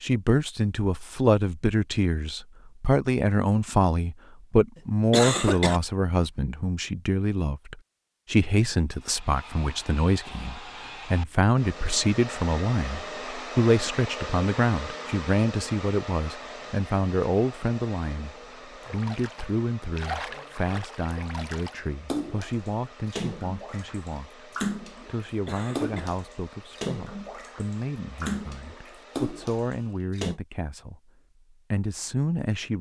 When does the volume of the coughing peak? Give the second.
5 s.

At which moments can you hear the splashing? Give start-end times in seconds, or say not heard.
18.8-30.4.